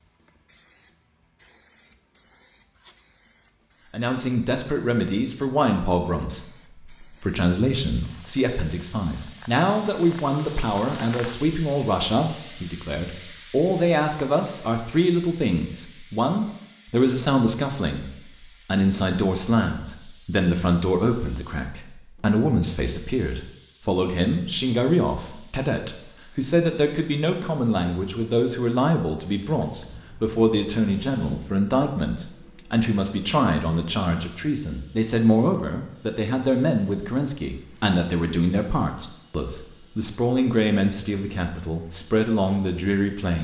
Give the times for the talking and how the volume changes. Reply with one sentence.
The talking can be heard from 3.9 to 43.4 s, at a steady volume.